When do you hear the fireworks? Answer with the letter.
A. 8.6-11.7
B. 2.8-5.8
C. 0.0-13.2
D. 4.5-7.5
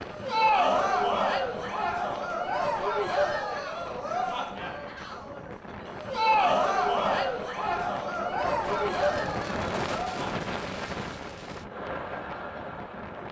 A.